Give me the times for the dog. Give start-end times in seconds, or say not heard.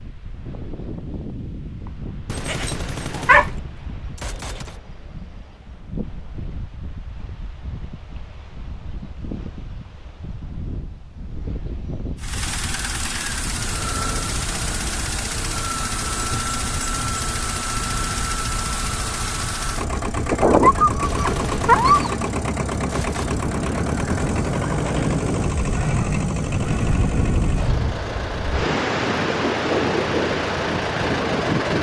2.5-3.5, 20.3-22.1.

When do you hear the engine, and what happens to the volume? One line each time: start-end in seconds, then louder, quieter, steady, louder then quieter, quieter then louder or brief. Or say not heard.
12.2-31.7 steady.